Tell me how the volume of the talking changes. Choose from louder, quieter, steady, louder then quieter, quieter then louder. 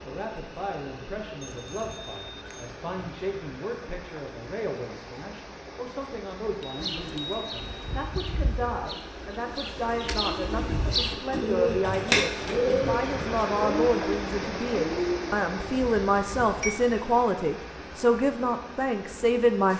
louder.